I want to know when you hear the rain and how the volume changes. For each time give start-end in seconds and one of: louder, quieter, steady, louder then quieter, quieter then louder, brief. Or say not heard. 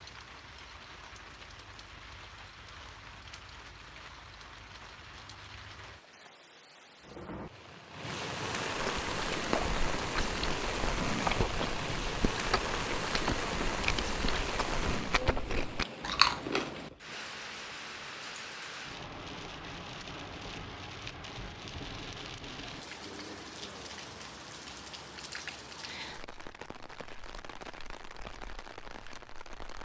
0.0-29.8 louder then quieter.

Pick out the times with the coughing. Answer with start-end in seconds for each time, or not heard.
not heard.